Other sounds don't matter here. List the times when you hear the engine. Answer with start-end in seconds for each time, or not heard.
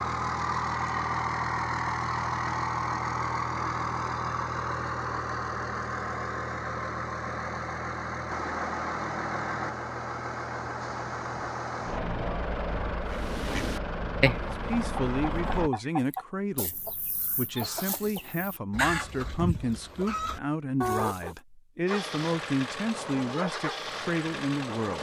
0.0-15.7, 21.9-24.9.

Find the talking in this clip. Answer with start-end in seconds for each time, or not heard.
14.3-24.9.